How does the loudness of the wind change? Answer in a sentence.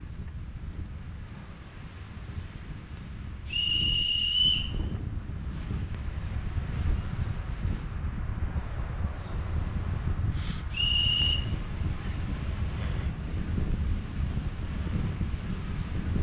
The volume of the wind goes up.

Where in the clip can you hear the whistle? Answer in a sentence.
You can hear the whistle from 3.5 to 4.7 s and from 10.7 to 11.4 s.